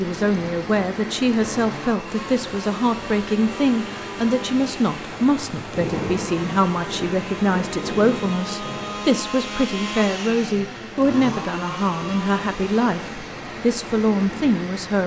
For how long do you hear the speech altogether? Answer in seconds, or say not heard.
15 s.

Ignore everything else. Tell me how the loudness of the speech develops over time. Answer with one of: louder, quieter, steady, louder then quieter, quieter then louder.
steady.